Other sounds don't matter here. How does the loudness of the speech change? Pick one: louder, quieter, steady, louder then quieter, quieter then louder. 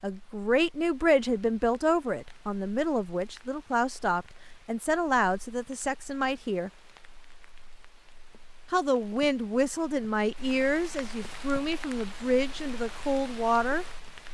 steady.